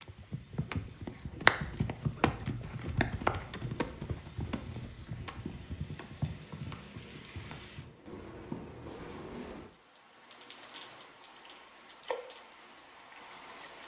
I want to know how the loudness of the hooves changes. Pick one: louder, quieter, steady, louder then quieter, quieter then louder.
quieter.